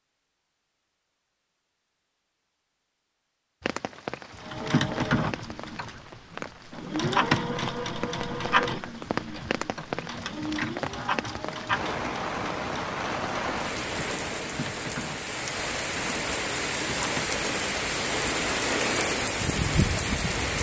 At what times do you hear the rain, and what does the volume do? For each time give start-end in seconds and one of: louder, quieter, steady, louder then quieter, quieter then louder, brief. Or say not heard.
3.6-20.5 louder.